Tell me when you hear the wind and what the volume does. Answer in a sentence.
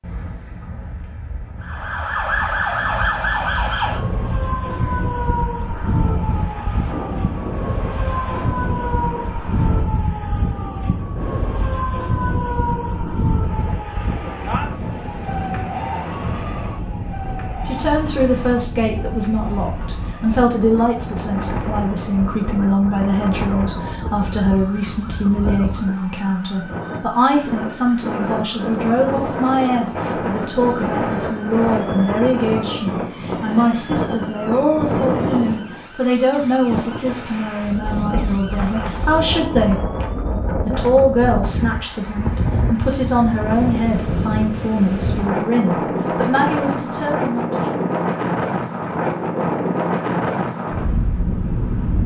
The wind can be heard from 0.0 to 52.0 s, getting louder.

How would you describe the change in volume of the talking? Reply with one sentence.
The loudness of the talking stays about the same.